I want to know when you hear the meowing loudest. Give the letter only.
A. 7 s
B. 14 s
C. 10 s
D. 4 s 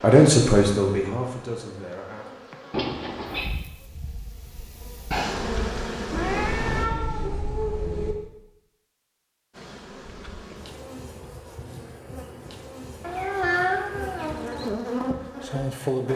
B.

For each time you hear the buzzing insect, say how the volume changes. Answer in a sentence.
You can hear the buzzing insect from 0.0 to 6.9 s, getting louder; and from 9.5 to 16.1 s, getting louder.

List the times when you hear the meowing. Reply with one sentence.
You can hear the meowing from 2.7 to 3.5 s, from 6.1 to 8.2 s and from 13.0 to 14.7 s.